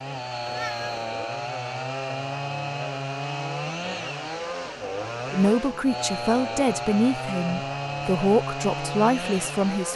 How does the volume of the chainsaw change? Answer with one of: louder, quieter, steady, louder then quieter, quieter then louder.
steady.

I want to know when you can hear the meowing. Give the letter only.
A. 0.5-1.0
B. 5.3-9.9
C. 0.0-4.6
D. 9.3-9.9
A.